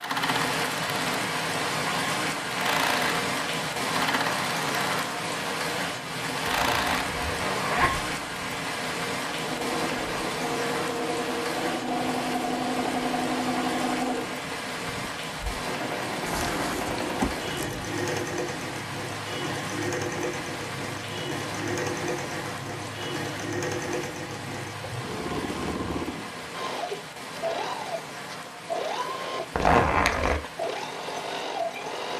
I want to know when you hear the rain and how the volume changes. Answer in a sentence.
You can hear the rain from 0.0 to 32.1 s, getting quieter.